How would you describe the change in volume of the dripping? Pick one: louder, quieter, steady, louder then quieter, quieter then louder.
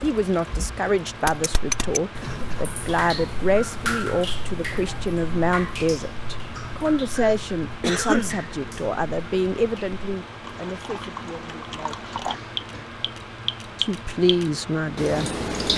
quieter then louder.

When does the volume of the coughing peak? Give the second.
8 s.